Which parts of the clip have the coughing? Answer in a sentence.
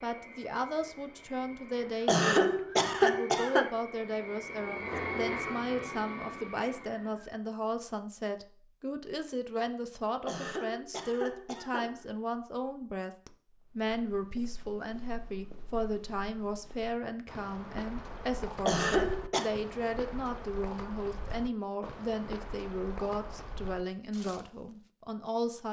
The coughing can be heard from 2.0 to 3.6 s, from 10.2 to 12.1 s and from 18.6 to 19.5 s.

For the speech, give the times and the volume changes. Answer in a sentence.
The speech can be heard from 0.0 to 25.6 s, at a steady volume.